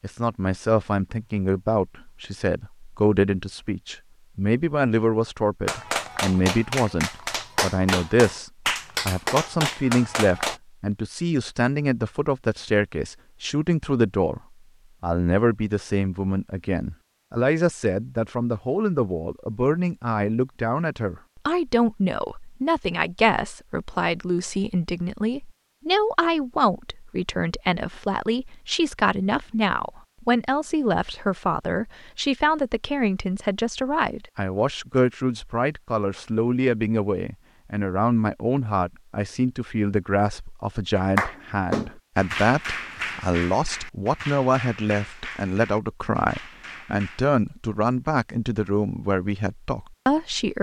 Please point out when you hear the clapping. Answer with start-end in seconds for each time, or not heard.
5.7-10.6, 41.0-47.3.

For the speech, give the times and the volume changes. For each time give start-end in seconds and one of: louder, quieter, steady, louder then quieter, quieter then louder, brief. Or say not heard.
0.0-14.4 steady
15.0-50.5 steady.